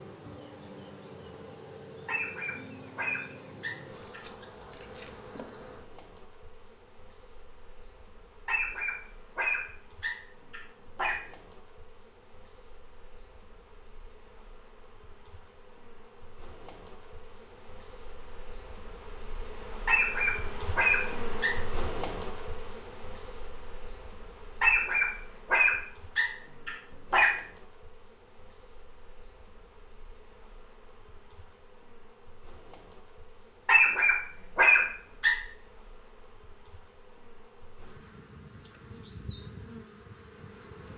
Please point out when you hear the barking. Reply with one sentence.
You can hear the barking from 2.0 to 4.2 s, from 8.4 to 11.2 s, from 19.9 to 21.6 s, from 24.6 to 27.3 s and from 33.6 to 35.4 s.